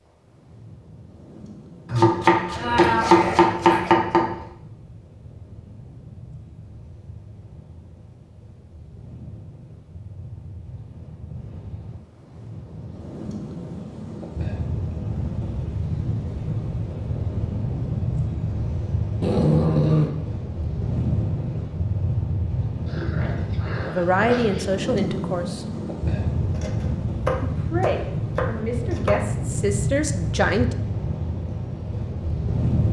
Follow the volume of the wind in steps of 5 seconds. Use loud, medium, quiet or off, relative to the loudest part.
quiet, quiet, medium, loud, loud, loud, loud.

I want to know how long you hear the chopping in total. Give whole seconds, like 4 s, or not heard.
5 s.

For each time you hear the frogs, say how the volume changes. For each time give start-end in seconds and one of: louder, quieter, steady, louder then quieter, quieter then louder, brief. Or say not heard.
not heard.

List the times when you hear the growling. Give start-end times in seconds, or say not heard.
2.9-4.0, 19.2-20.1, 22.9-24.6.